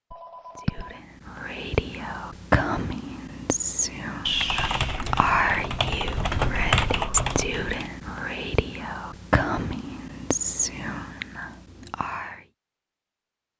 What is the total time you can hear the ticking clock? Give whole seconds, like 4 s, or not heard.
not heard.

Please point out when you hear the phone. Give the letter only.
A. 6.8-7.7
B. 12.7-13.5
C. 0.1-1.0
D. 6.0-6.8
C.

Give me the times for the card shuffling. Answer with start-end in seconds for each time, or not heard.
not heard.